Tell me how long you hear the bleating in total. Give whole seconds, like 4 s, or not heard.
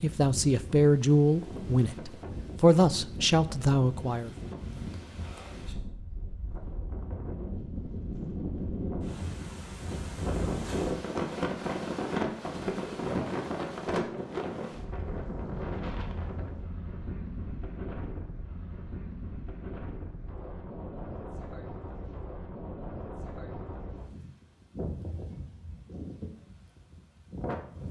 not heard.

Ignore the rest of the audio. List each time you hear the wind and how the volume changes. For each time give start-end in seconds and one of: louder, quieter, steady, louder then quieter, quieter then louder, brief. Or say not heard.
0.0-27.8 louder then quieter.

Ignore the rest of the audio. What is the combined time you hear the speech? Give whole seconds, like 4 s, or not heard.
4 s.